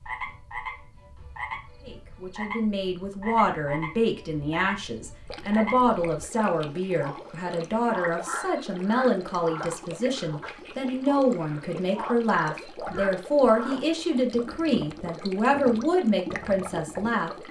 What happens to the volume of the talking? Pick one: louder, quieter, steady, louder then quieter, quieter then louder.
steady.